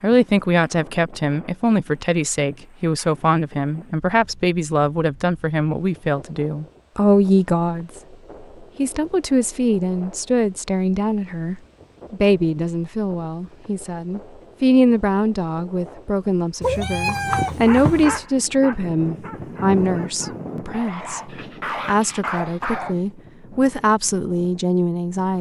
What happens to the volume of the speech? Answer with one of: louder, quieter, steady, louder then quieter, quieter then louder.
steady.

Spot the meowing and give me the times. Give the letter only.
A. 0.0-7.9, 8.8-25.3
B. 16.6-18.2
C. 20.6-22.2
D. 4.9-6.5
B.